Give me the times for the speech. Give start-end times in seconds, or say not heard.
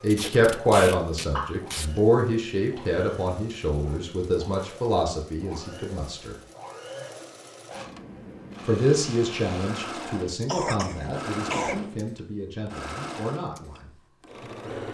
0.0-6.3, 8.7-13.9.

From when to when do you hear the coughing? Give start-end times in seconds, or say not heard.
1.4-2.0, 10.4-11.8.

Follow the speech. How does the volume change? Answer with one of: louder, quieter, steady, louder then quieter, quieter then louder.
quieter.